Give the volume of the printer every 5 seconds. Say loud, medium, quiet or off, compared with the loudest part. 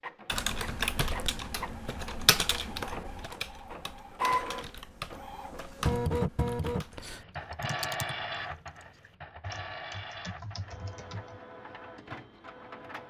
loud, loud, medium.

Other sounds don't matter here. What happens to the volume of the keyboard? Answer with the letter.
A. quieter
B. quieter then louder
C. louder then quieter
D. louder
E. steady
A.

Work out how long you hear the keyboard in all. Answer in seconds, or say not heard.
11 s.